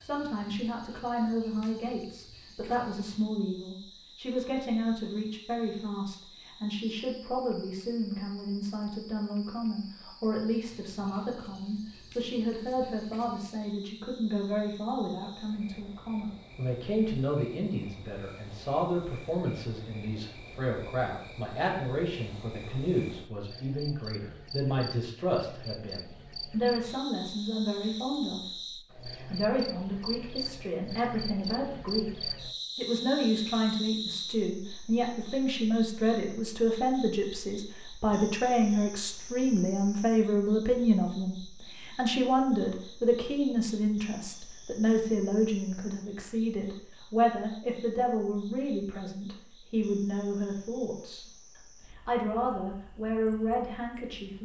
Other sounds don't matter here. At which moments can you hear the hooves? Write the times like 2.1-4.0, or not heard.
not heard.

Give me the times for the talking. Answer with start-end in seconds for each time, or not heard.
0.0-51.2, 51.9-54.4.